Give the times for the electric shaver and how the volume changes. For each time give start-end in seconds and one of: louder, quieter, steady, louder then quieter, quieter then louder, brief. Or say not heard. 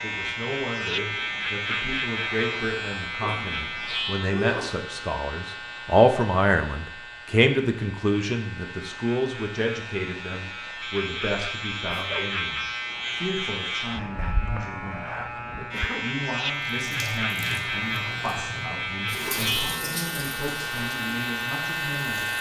0.0-22.3 quieter then louder.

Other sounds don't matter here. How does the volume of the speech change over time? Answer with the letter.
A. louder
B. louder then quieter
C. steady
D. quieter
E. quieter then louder
B.